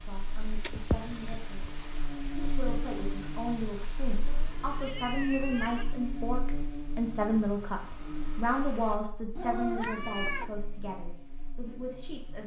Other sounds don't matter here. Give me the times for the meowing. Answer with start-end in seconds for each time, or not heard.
0.5-1.9, 4.2-6.0, 9.3-10.6.